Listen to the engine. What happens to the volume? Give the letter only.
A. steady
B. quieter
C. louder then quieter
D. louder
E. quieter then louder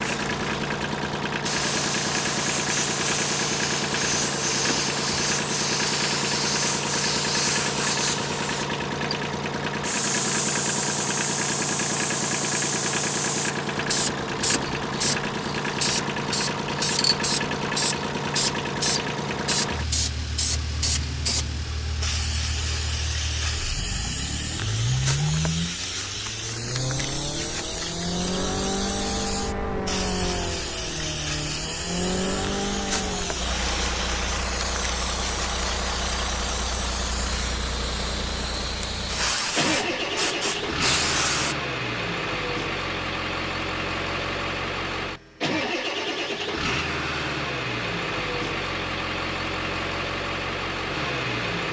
A.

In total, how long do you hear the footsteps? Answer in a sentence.
You can't hear the footsteps here.